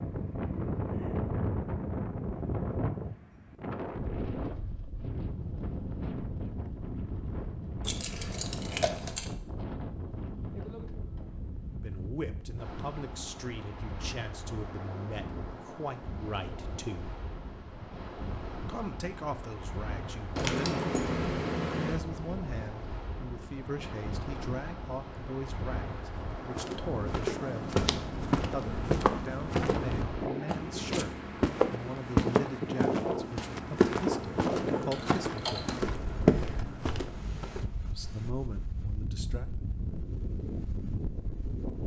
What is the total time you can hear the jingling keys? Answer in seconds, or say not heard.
4 s.